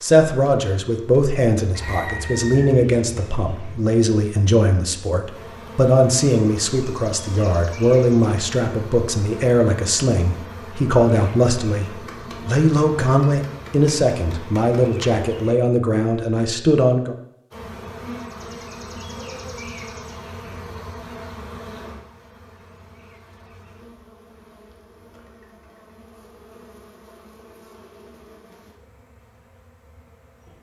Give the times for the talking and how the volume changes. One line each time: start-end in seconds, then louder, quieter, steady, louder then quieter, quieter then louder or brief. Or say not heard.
0.0-17.1 steady.